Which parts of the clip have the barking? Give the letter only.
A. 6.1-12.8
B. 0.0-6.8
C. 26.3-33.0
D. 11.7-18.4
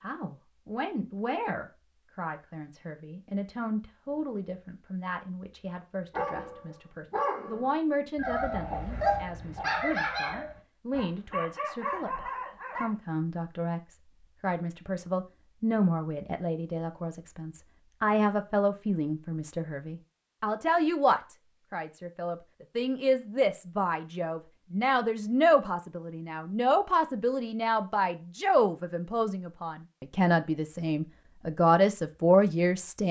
A.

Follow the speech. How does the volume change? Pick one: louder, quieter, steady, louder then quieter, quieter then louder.
louder.